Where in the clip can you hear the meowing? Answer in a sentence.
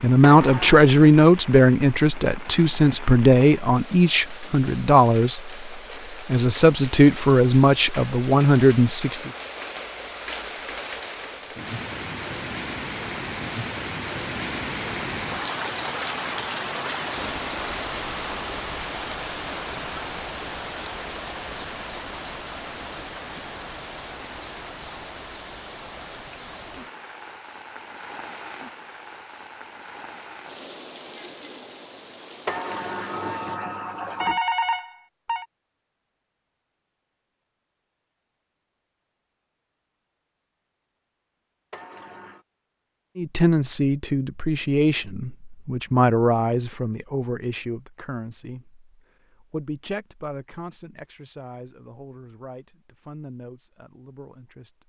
The meowing can't be heard in this clip.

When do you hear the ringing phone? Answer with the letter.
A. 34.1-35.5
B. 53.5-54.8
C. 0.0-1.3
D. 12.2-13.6
A.